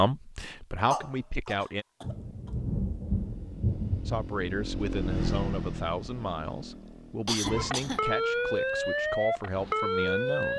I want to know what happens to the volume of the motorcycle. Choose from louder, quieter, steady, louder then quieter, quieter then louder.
louder then quieter.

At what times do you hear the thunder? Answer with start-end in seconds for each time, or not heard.
2.0-4.9.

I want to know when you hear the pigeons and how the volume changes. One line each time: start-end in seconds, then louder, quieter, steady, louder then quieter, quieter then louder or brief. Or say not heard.
not heard.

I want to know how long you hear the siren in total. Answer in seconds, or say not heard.
3 s.